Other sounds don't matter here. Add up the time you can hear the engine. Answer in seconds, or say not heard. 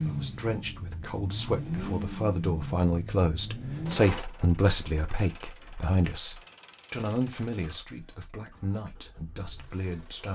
10 s.